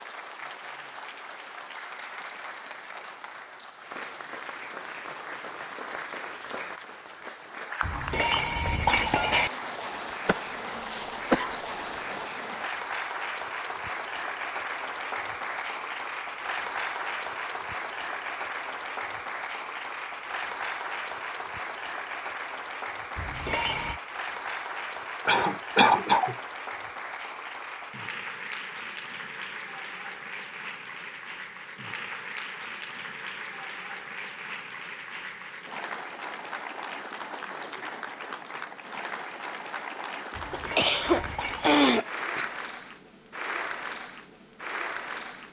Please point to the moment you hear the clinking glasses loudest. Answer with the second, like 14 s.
9 s.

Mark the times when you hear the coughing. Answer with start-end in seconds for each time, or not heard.
10.2-12.2, 25.2-26.4, 40.5-42.5.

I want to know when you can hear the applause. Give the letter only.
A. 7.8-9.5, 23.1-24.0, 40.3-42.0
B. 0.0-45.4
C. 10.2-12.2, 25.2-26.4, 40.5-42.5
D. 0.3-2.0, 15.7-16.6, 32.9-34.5
B.